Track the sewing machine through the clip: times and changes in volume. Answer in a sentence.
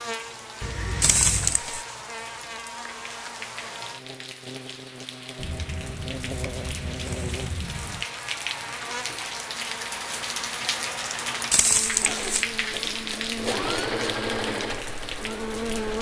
The sewing machine can be heard from 11.9 to 15.9 s, getting louder then quieter.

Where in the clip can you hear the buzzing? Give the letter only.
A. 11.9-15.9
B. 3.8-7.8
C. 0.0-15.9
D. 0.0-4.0
C.